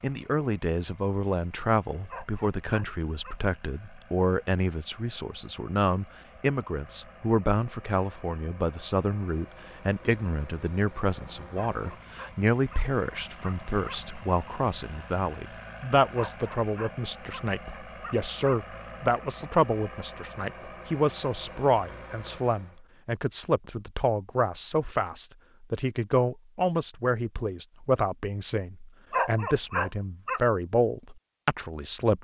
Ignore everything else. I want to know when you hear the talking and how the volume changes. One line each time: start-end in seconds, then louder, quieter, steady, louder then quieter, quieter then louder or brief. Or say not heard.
0.0-32.2 steady.